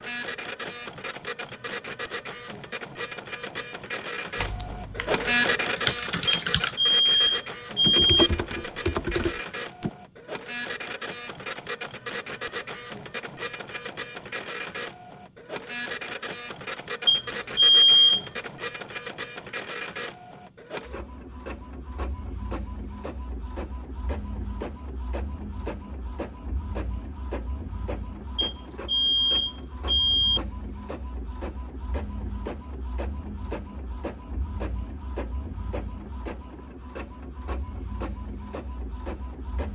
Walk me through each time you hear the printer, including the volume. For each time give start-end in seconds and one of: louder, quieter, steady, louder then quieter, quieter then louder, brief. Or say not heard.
0.0-39.7 quieter.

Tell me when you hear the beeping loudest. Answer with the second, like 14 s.
18 s.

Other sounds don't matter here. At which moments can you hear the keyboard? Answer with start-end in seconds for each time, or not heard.
4.3-9.9.